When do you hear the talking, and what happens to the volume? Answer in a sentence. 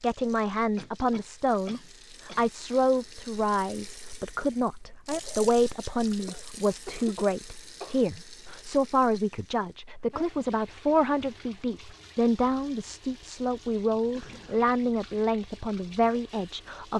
You can hear the talking from 0.0 to 16.9 s, at a steady volume.